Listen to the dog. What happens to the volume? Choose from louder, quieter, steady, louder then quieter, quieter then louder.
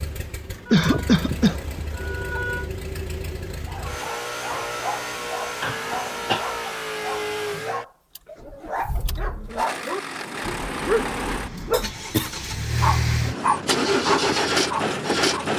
louder.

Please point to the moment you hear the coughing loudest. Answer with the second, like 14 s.
1 s.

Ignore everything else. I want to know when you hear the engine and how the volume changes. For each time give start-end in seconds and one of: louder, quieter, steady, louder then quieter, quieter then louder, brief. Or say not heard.
0.0-15.5 louder.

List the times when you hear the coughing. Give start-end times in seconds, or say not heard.
0.7-2.6, 5.6-6.5, 11.7-12.3.